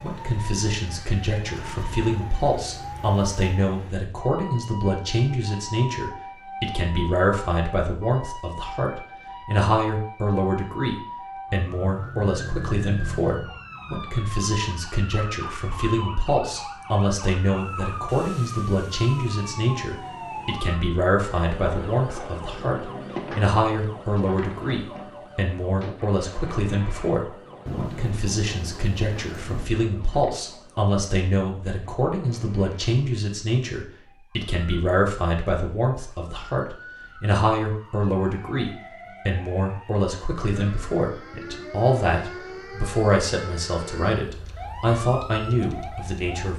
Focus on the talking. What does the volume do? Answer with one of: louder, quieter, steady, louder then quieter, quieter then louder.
steady.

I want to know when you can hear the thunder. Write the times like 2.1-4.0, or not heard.
27.6-29.6.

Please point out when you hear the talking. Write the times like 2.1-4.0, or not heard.
0.0-46.5.